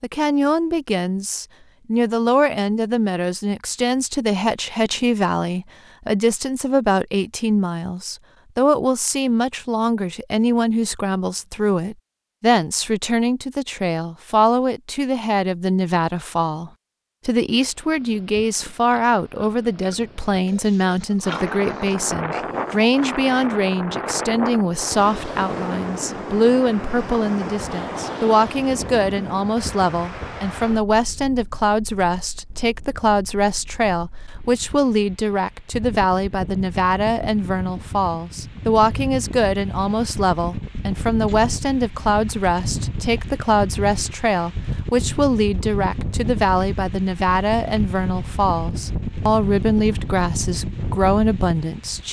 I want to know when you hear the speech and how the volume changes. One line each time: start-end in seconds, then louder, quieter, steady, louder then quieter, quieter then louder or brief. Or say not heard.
0.0-52.0 steady.